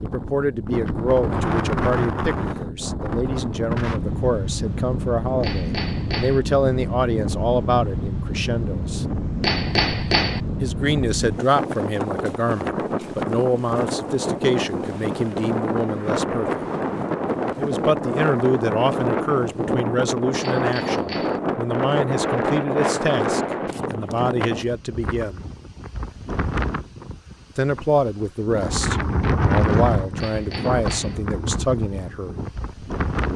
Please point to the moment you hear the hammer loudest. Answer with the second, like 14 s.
10 s.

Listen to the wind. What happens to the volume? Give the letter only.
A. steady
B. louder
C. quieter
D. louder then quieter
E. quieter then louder
A.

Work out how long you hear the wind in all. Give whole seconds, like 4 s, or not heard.
33 s.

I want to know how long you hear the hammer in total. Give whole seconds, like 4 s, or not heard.
4 s.